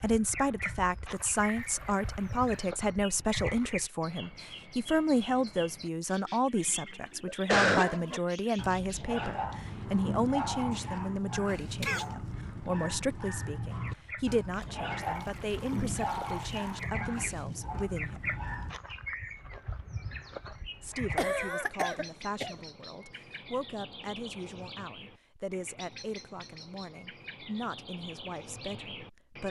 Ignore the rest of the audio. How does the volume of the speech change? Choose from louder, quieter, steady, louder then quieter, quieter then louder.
quieter.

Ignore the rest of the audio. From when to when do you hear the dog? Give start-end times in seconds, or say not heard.
7.8-18.8.